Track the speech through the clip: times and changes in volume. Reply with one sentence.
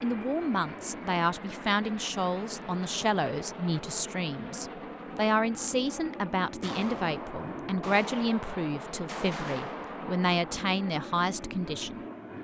You can hear the speech from 0.0 to 11.9 s, at a steady volume.